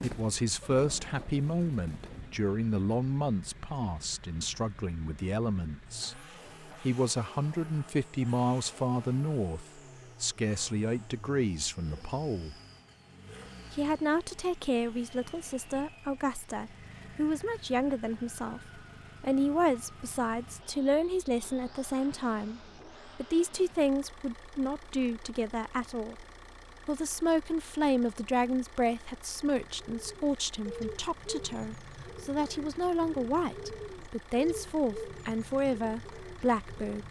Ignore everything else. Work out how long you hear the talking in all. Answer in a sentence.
You can hear the talking for 35 seconds altogether.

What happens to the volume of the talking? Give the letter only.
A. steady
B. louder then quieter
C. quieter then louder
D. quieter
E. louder
A.